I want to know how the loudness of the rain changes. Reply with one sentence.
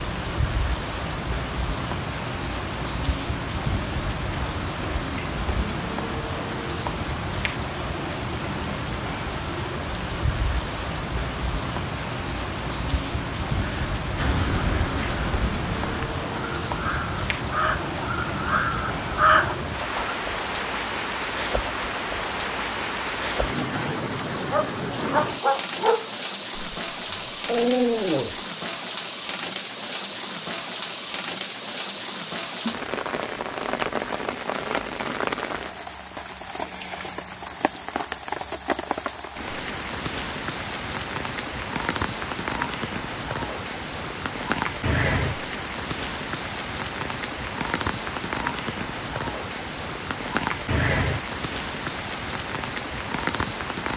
The loudness of the rain stays about the same.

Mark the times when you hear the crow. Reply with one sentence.
The crow can be heard from 13.6 to 20.1 s.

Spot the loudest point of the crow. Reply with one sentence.
The loudest moment of the crow is at 19 seconds.